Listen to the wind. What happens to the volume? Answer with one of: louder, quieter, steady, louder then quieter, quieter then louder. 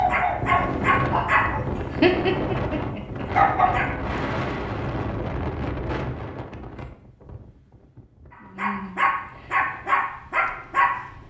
quieter.